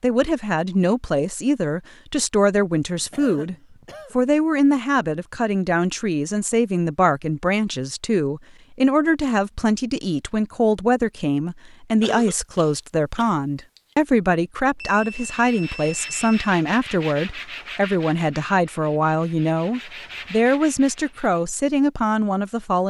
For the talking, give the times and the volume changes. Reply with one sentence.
You can hear the talking from 0.0 to 22.8 s, at a steady volume.